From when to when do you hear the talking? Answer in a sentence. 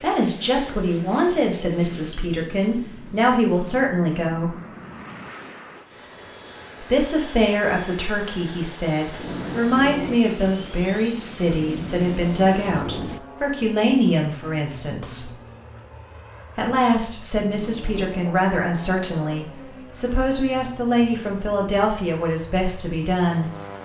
The talking can be heard from 0.0 to 4.5 s, from 6.8 to 15.3 s and from 16.6 to 23.5 s.